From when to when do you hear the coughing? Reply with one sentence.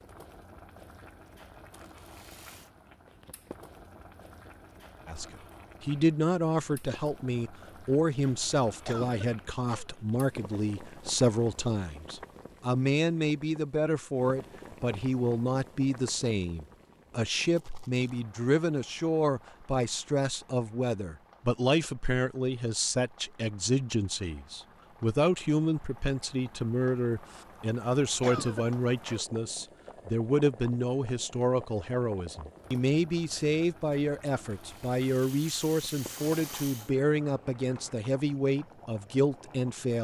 The coughing can be heard from 8.8 to 9.9 s and from 28.2 to 29.2 s.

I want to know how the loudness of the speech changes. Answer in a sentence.
The volume of the speech stays about the same.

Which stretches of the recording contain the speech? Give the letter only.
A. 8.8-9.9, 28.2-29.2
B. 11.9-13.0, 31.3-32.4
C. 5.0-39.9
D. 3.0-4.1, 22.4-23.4
C.